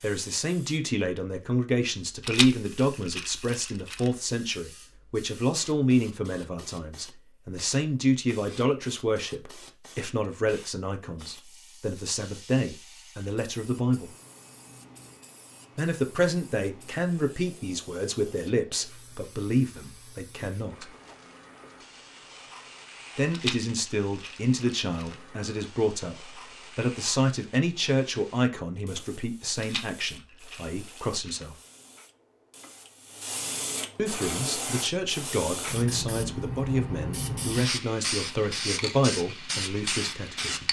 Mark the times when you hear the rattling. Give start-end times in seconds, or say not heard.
2.2-4.1, 23.3-25.1, 29.6-31.4.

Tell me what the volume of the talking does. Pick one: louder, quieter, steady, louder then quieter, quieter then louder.
steady.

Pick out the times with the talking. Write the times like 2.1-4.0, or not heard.
0.0-14.1, 15.8-20.9, 23.1-31.6, 34.0-40.6.